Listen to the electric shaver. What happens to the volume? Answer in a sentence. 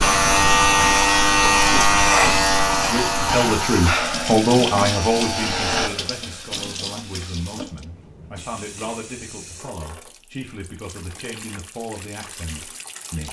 The volume of the electric shaver goes down.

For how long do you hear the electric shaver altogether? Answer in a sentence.
You can hear the electric shaver for 6 seconds altogether.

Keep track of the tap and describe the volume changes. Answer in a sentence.
The volume of the tap goes down.